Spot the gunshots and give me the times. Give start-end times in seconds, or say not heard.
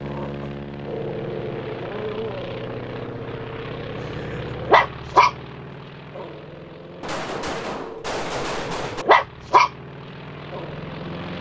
7.0-9.1.